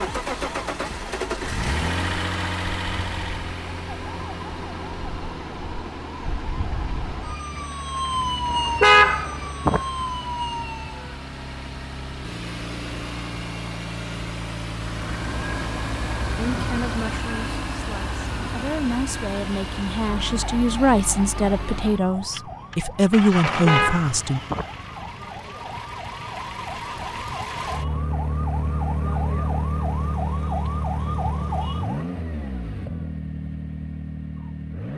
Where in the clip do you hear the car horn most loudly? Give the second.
9 s.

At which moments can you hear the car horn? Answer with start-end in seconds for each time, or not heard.
8.5-9.8, 23.5-24.6.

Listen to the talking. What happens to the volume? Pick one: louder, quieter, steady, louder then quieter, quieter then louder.
louder.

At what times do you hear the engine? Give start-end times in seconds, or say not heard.
0.0-34.9.